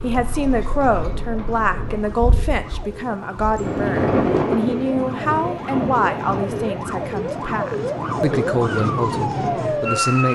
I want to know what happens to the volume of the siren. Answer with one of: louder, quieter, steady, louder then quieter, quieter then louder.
louder.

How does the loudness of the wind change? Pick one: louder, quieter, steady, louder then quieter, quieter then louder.
louder then quieter.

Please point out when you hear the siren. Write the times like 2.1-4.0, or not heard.
0.0-10.3.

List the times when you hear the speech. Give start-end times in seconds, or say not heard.
0.0-10.3.